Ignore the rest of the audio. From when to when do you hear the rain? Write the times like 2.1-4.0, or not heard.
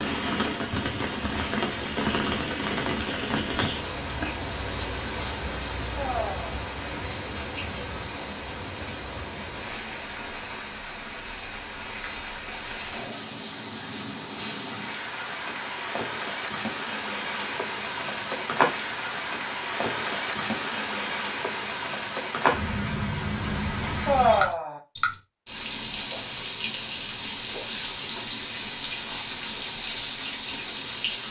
0.0-31.2.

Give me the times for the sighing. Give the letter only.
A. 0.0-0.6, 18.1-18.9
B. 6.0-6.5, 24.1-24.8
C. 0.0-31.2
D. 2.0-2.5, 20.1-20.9
B.